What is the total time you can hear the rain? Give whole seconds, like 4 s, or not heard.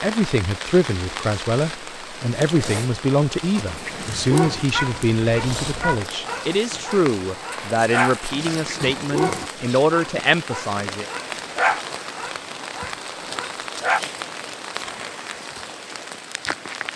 17 s.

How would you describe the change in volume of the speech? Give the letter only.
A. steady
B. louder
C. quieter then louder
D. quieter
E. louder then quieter
A.